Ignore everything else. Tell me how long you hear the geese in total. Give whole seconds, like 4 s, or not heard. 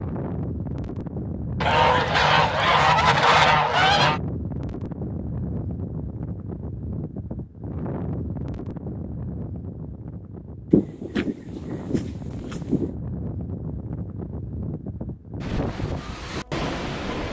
5 s.